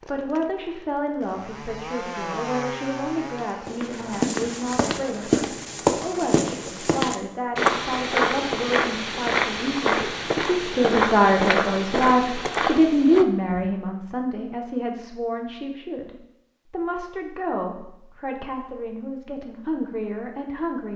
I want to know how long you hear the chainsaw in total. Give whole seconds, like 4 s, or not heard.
4 s.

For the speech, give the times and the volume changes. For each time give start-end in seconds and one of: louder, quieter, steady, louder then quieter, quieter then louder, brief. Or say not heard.
0.1-20.9 louder then quieter.